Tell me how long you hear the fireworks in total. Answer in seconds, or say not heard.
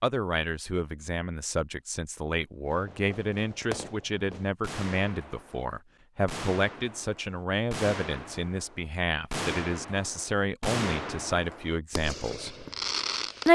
11 s.